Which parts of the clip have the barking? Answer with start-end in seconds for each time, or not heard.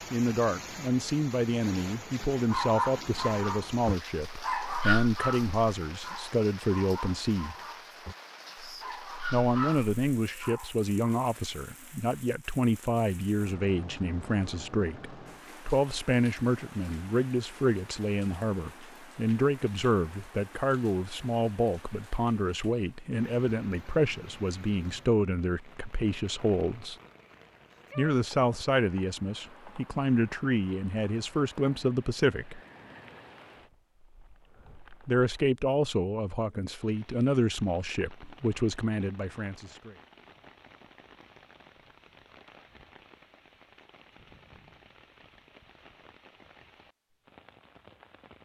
2.5-11.2.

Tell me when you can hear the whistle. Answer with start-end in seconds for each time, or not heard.
not heard.